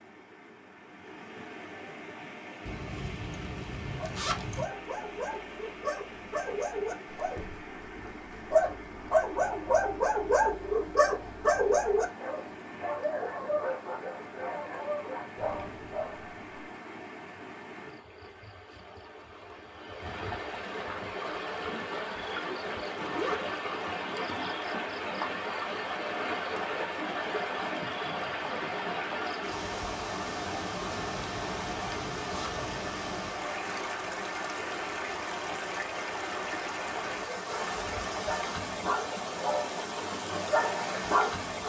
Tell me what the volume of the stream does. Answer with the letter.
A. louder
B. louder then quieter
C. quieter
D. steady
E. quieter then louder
A.